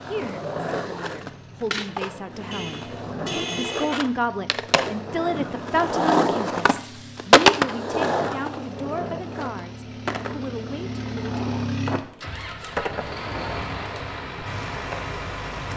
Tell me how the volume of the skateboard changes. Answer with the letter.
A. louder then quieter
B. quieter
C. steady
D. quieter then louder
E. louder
A.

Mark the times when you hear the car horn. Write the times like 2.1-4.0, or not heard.
2.5-4.0.